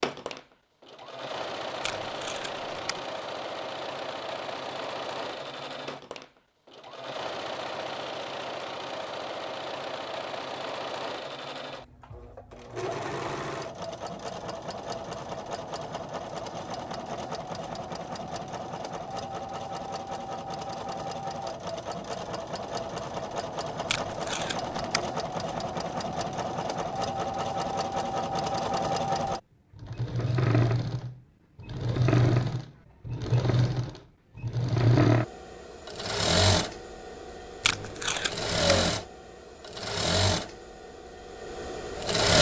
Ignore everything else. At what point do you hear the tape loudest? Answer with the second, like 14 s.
38 s.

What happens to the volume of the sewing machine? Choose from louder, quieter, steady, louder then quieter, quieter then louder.
louder.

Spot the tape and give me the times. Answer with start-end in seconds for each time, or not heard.
1.8-3.0, 23.9-25.1, 37.6-38.5.